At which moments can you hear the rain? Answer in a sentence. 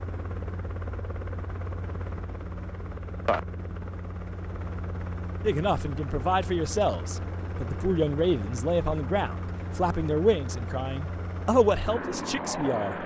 You can't hear the rain here.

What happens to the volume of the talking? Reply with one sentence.
The volume of the talking stays about the same.